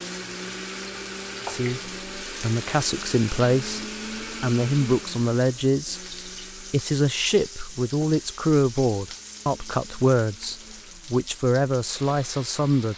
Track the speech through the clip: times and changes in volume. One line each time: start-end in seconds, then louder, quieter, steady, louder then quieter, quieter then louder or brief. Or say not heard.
1.4-12.9 steady.